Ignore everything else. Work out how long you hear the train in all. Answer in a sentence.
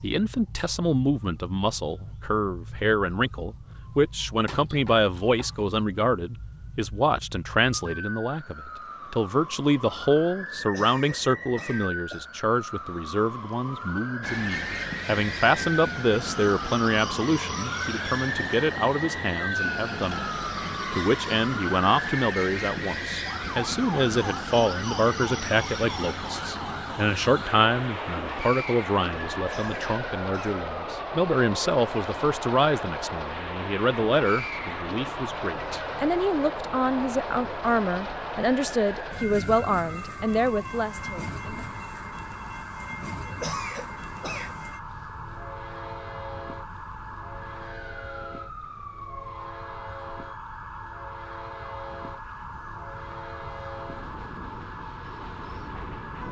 The train can be heard for 42 seconds in total.